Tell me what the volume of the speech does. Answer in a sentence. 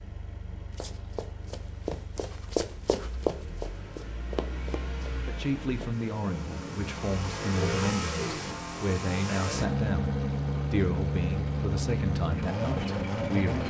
The loudness of the speech stays about the same.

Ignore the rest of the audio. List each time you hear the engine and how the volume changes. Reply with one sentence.
You can hear the engine from 0.0 to 13.6 s, getting louder.